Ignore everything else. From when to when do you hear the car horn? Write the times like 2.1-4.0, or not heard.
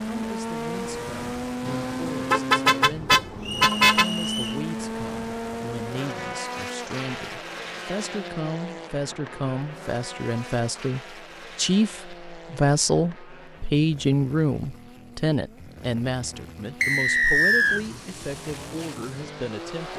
1.6-4.1.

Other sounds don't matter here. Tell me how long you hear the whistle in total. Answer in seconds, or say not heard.
2 s.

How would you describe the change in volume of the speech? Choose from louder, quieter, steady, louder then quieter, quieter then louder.
louder then quieter.